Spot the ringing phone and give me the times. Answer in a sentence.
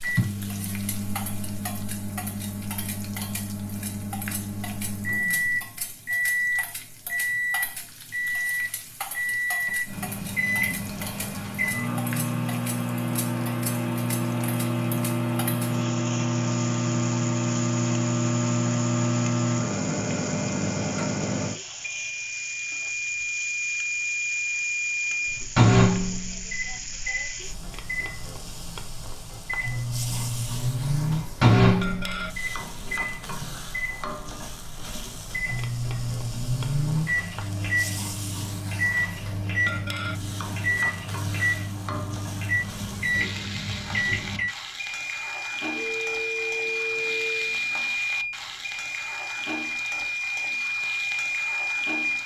You can hear the ringing phone from 45.8 to 47.5 s.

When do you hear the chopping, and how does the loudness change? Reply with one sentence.
You can't hear the chopping here.